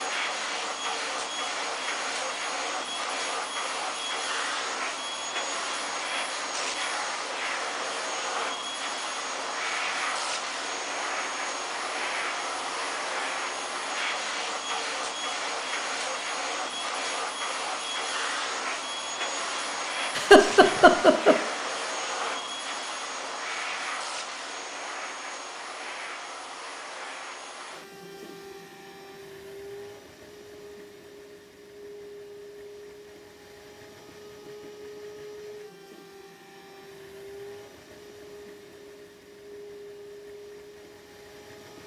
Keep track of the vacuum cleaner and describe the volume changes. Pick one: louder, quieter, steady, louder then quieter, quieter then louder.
quieter.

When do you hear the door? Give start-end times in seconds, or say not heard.
not heard.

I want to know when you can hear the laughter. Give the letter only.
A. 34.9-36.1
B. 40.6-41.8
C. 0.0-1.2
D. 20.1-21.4
D.